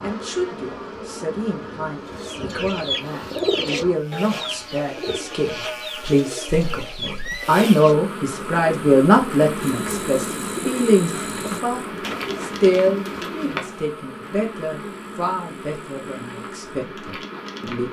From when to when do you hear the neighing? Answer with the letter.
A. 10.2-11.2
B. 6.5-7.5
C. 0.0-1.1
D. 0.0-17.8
B.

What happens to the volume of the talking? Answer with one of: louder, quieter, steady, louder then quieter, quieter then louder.
louder then quieter.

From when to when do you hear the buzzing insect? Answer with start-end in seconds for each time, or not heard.
0.0-17.8.